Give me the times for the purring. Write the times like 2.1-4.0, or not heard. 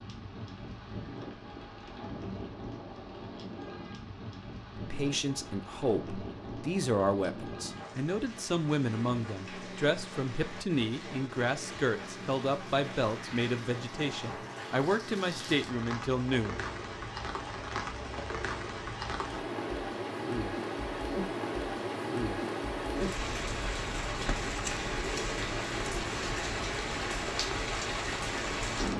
not heard.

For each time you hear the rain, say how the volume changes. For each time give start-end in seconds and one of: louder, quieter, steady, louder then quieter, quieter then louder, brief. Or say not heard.
0.0-28.9 louder.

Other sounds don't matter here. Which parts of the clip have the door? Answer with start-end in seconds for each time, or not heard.
not heard.